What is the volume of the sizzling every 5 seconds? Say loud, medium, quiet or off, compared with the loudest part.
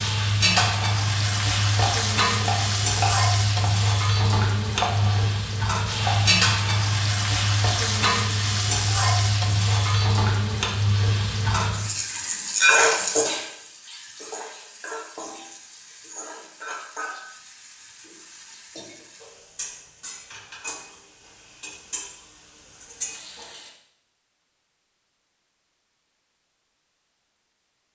loud, loud, loud, quiet, quiet, off.